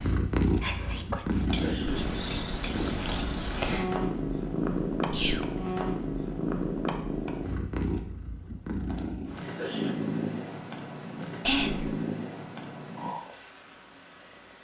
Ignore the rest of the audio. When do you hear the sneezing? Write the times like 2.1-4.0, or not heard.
1.4-2.0, 9.4-9.9.